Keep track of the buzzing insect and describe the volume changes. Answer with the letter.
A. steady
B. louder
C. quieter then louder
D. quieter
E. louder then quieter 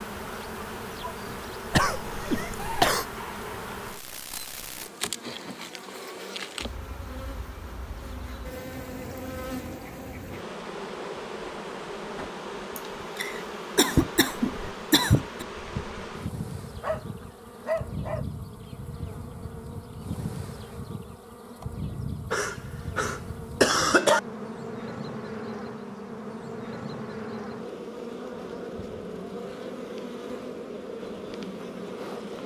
A.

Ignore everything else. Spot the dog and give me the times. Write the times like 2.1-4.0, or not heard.
16.8-18.2.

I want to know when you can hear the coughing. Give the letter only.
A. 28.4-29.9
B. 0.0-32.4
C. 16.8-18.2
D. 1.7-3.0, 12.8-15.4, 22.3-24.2
D.